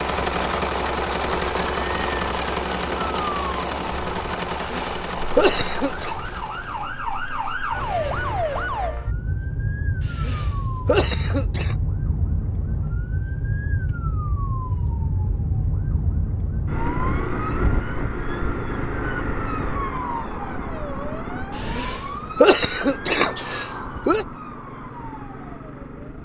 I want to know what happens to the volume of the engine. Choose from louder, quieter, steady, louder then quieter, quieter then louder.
quieter.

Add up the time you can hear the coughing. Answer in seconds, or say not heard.
6 s.